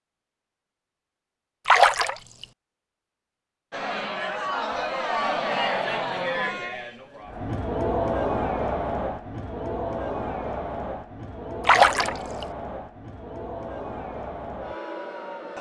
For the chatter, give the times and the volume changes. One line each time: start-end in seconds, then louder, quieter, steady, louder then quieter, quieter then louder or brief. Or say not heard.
3.7-15.5 quieter.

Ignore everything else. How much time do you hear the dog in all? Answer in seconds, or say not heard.
not heard.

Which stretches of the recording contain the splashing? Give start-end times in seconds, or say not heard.
1.6-2.5, 11.7-12.4.